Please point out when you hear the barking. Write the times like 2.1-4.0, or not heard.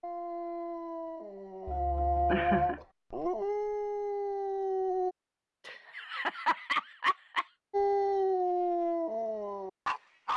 0.0-5.2, 7.7-10.3.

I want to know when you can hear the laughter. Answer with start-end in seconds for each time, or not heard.
1.6-2.8, 5.7-7.5.